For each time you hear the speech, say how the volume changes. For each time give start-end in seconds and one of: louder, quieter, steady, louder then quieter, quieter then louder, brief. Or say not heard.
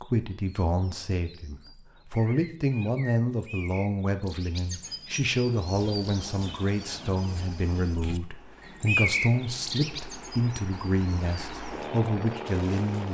0.0-13.1 steady.